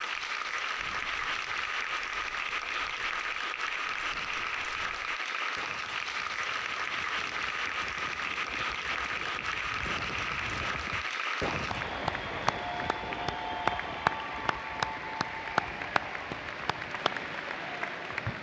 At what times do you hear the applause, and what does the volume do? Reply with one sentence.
The applause can be heard from 0.0 to 18.3 s, at a steady volume.